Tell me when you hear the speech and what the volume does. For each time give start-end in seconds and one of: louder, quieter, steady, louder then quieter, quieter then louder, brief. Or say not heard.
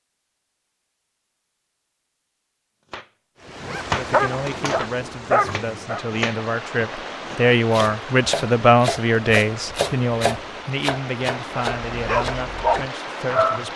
4.0-13.7 louder then quieter.